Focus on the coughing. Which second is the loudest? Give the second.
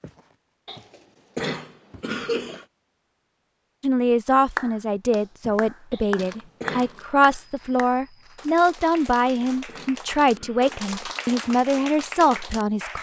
2 s.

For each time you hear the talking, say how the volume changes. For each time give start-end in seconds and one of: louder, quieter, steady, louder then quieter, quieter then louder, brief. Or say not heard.
3.8-12.9 steady.